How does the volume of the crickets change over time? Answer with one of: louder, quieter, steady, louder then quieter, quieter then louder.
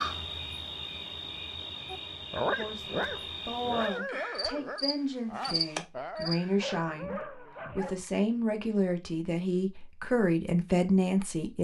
louder.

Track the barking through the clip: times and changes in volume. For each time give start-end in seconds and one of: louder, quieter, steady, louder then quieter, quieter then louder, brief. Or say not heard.
1.9-8.1 quieter.